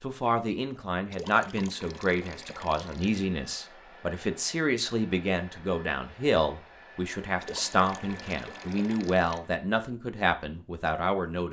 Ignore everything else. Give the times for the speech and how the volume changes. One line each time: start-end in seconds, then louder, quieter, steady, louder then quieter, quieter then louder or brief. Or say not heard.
0.0-11.4 steady.